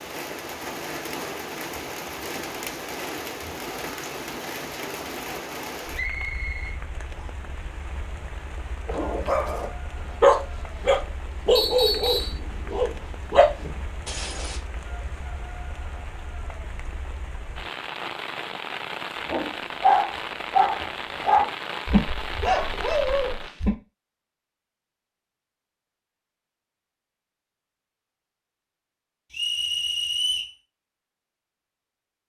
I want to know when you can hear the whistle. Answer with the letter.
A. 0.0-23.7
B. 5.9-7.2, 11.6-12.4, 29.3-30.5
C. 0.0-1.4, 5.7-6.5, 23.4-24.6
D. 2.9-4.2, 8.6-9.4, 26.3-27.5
B.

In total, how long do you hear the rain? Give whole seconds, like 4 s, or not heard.
24 s.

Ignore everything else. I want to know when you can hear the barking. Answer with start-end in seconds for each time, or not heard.
8.8-14.6, 19.3-23.7.